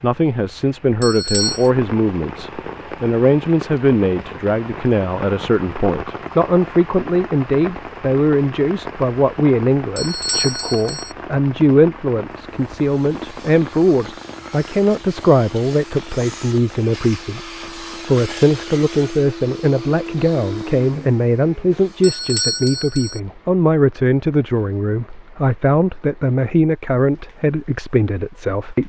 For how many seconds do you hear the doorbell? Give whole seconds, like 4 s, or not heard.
3 s.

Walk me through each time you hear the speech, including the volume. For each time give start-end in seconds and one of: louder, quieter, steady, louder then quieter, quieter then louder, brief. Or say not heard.
0.0-28.8 steady.